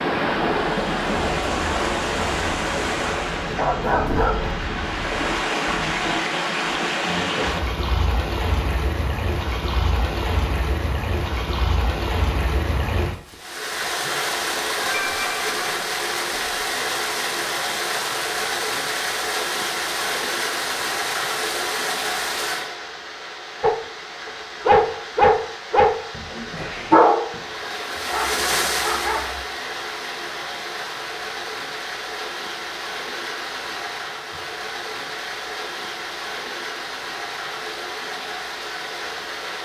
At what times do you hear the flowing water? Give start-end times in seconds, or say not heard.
0.0-39.6.